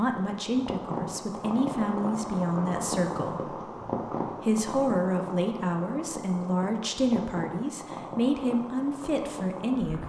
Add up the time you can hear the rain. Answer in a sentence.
You can hear the rain for 10 seconds altogether.